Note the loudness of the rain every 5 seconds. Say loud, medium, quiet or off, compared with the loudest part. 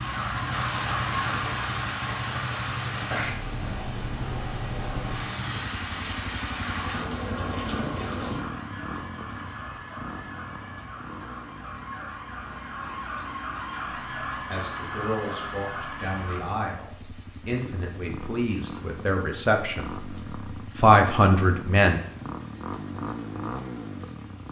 loud, loud, quiet, quiet, quiet.